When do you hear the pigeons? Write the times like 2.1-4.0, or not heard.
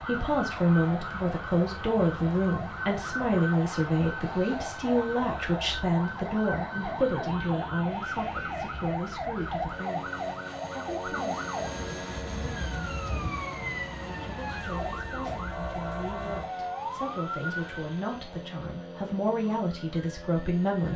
not heard.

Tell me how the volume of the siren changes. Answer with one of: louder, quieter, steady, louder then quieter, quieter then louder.
steady.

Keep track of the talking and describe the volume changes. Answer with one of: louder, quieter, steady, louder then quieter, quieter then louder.
quieter then louder.